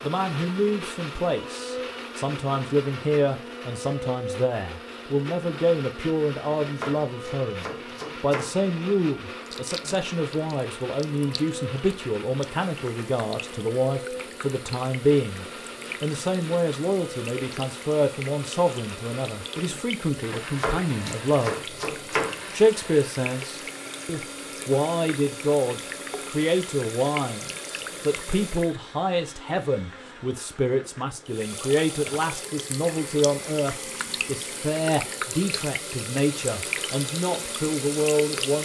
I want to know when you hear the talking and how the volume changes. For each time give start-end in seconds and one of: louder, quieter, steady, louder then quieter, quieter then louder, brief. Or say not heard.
0.0-21.7 steady
22.5-38.5 steady.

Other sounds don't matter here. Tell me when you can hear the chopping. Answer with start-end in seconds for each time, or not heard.
6.5-8.7, 20.3-22.4.